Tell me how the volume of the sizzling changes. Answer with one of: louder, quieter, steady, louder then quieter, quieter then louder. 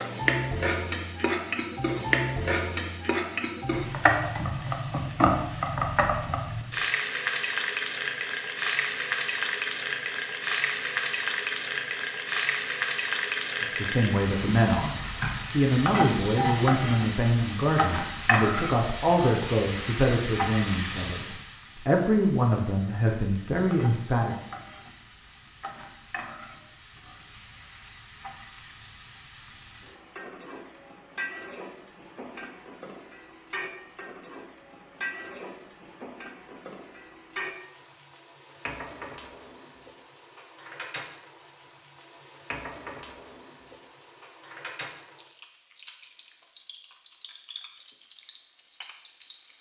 quieter.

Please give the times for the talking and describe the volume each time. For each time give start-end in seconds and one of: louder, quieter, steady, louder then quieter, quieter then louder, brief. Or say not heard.
13.6-24.4 steady.